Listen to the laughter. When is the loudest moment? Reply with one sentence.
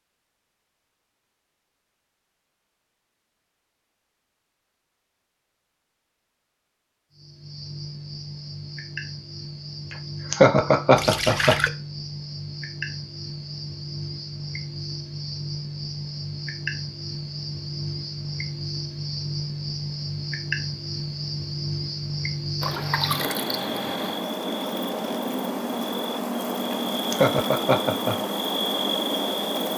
The loudest moment of the laughter is at 11 seconds.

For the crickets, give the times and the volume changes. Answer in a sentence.
The crickets can be heard from 7.1 to 29.7 s, getting louder.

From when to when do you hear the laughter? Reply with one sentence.
The laughter can be heard from 10.3 to 11.6 s and from 27.1 to 28.1 s.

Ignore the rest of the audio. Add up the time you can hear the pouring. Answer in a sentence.
You can hear the pouring for 2 seconds altogether.